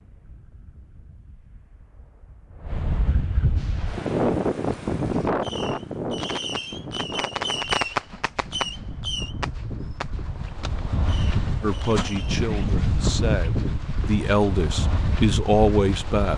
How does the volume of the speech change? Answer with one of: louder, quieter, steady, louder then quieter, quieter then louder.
louder.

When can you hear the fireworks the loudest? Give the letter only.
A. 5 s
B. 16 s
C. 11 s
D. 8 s
D.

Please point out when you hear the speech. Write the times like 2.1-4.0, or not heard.
11.6-16.3.